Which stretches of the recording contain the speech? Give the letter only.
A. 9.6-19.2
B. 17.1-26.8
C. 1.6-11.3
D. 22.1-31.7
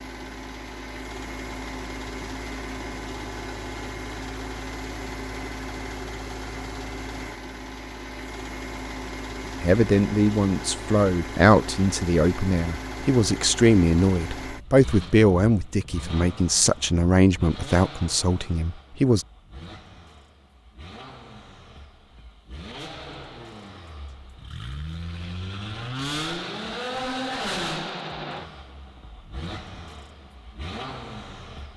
A.